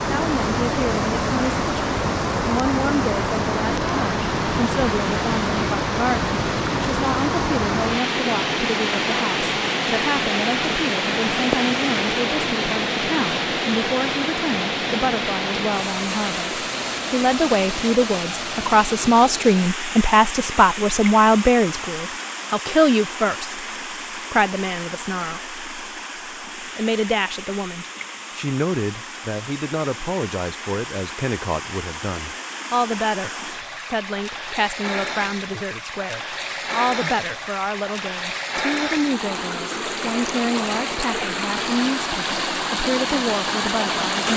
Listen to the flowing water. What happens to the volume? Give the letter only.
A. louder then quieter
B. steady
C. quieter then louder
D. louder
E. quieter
C.